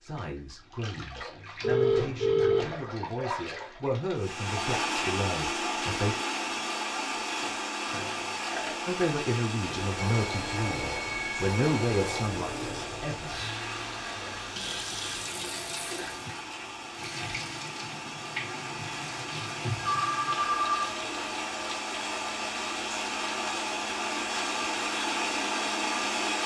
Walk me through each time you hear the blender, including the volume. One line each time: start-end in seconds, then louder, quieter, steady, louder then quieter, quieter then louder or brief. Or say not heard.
4.2-26.4 quieter then louder.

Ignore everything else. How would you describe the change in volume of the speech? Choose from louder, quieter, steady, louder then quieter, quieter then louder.
louder.